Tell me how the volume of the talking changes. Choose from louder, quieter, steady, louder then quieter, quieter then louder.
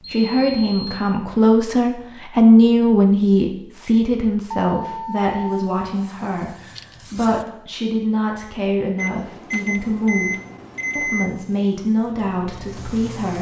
quieter.